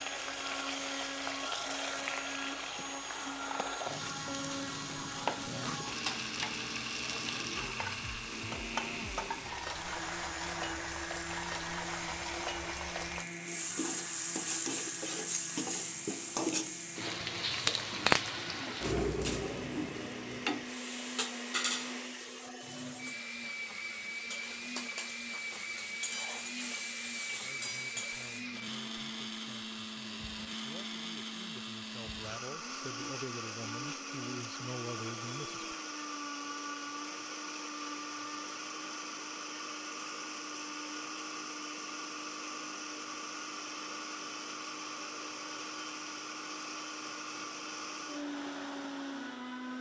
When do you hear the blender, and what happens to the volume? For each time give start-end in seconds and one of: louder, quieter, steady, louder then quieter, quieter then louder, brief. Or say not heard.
0.0-49.7 steady.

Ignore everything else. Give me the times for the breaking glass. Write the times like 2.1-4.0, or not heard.
not heard.